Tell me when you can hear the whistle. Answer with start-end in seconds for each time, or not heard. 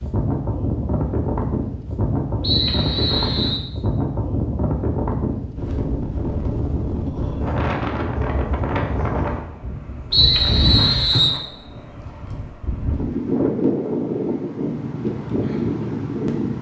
2.4-3.6, 10.1-11.4.